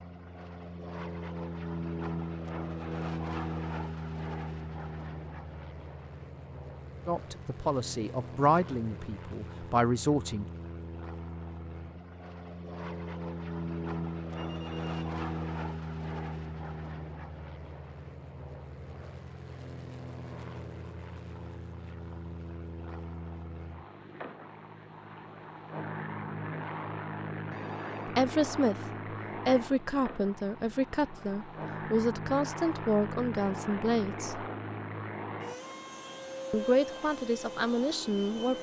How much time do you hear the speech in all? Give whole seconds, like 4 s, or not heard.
11 s.